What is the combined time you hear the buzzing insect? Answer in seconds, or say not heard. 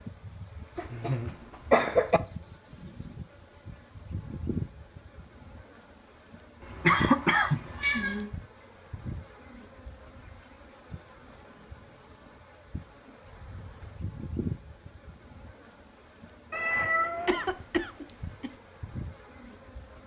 20 s.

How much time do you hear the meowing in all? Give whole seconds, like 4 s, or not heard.
3 s.